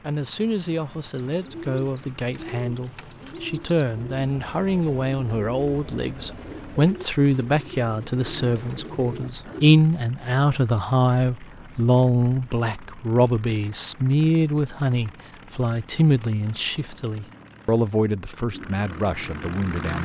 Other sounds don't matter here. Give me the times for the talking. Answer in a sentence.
You can hear the talking from 0.0 to 20.0 s.